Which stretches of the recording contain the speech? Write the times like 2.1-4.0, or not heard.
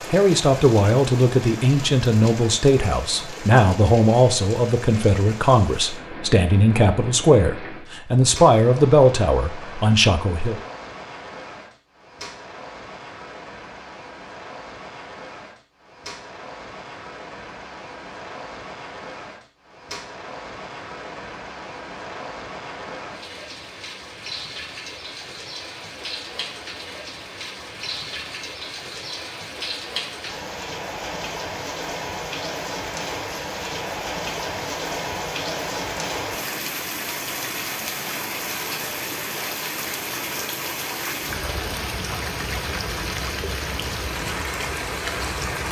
0.1-10.6.